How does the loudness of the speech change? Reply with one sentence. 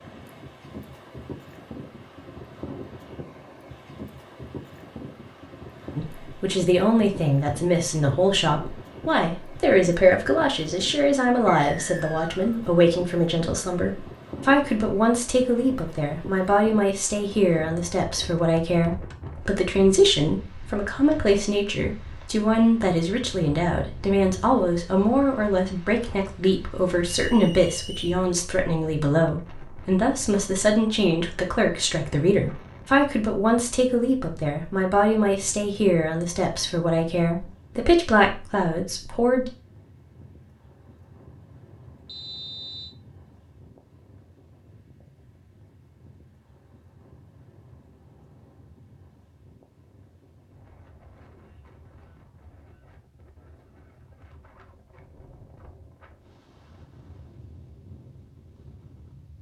The loudness of the speech stays about the same.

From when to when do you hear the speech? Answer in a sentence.
The speech can be heard from 6.0 to 39.5 s.